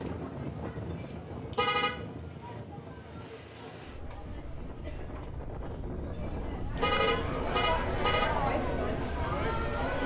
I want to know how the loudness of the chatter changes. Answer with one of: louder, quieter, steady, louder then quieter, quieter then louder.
louder.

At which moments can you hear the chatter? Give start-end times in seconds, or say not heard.
0.0-10.0.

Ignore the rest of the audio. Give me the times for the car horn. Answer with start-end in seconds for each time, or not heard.
0.9-2.0, 6.2-8.3.